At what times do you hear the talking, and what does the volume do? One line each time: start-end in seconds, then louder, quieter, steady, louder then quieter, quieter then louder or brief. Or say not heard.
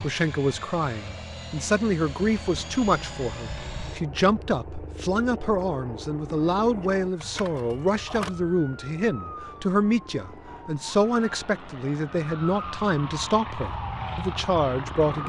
0.0-15.2 steady.